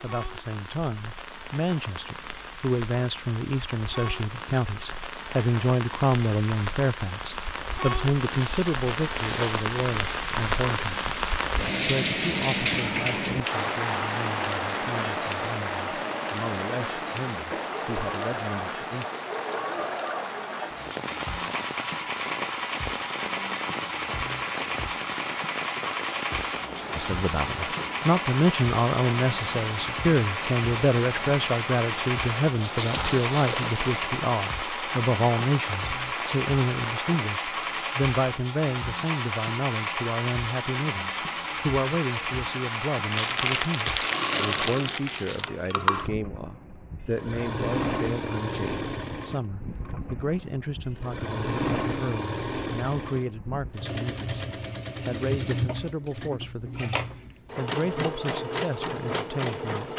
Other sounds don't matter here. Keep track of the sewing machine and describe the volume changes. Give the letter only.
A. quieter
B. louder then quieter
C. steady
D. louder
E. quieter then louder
C.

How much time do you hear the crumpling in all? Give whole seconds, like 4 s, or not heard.
5 s.